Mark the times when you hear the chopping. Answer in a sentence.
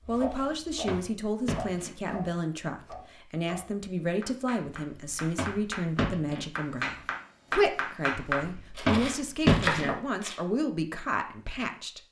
The chopping can be heard from 0.0 to 10.3 s.